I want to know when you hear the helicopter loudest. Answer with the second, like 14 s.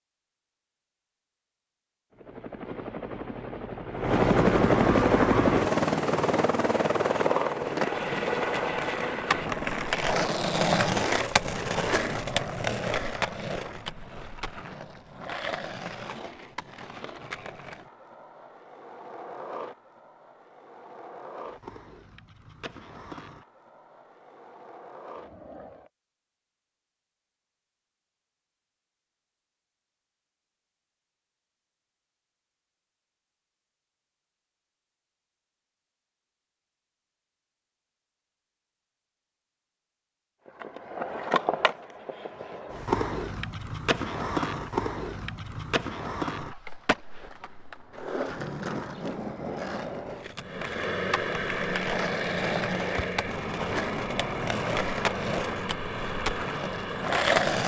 5 s.